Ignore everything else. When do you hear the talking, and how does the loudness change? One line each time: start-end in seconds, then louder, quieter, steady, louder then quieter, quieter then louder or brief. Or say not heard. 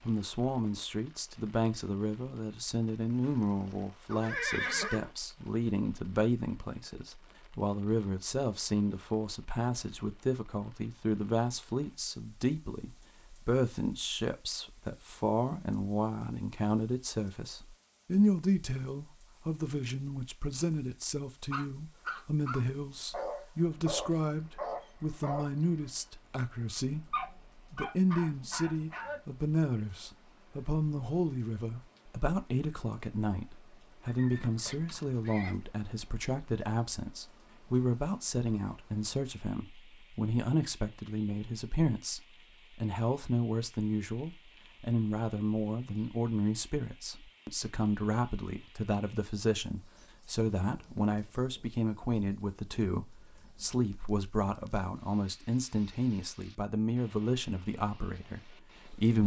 0.0-27.1 steady
27.7-59.2 steady.